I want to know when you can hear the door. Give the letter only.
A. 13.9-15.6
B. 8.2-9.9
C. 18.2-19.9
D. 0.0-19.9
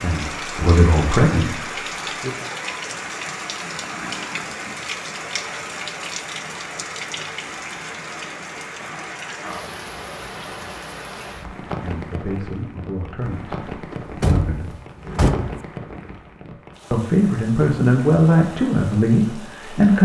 A.